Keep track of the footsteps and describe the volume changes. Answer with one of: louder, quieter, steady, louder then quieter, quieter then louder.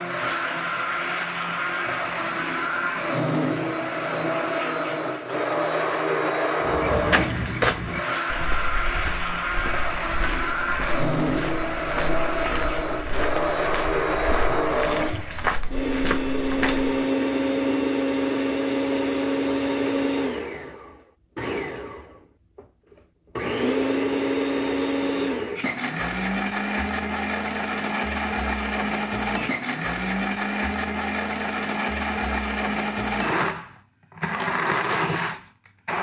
quieter then louder.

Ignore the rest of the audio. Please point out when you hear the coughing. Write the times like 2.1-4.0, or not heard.
not heard.